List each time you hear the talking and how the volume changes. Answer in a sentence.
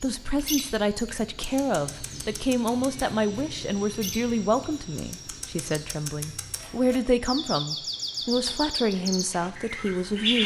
The talking can be heard from 0.0 to 10.4 s, at a steady volume.